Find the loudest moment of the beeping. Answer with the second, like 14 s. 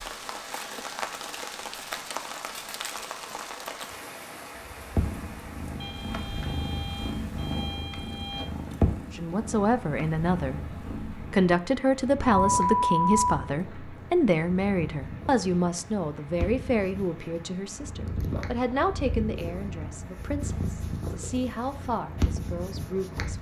13 s.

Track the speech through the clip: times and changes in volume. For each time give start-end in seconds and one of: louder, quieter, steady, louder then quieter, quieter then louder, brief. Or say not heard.
9.1-23.3 quieter.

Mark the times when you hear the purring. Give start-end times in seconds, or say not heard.
5.0-23.3.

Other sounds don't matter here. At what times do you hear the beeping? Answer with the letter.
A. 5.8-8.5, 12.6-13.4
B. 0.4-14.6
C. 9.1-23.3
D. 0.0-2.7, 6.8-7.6
A.